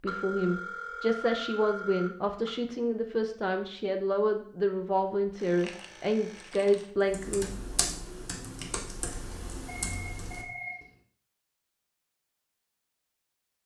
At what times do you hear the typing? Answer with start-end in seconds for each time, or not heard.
7.0-10.4.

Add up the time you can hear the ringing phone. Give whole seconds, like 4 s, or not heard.
5 s.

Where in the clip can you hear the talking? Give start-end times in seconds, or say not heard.
0.0-7.8.